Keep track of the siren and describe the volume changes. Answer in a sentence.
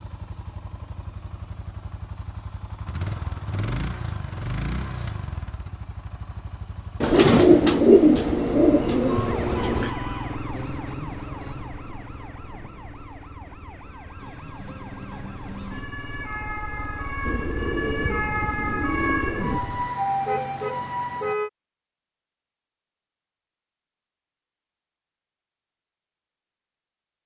The loudness of the siren goes down, then up.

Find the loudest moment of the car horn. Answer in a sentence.
The volume of the car horn peaks at 21 seconds.